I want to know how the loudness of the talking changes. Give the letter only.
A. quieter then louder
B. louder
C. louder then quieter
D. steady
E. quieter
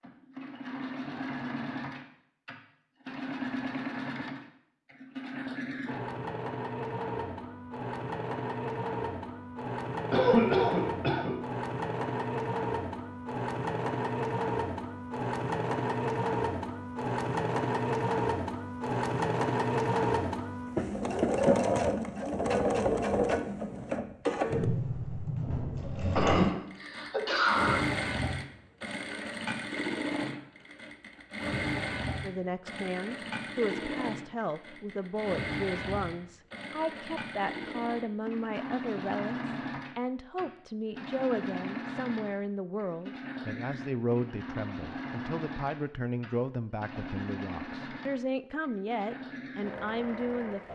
D.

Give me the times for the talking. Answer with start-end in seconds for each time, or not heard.
32.2-50.7.